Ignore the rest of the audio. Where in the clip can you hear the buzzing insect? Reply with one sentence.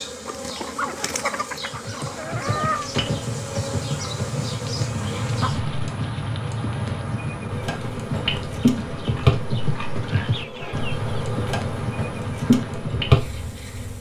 The buzzing insect can be heard from 0.0 to 5.8 s and from 7.5 to 13.9 s.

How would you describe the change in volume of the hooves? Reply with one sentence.
The volume of the hooves stays about the same.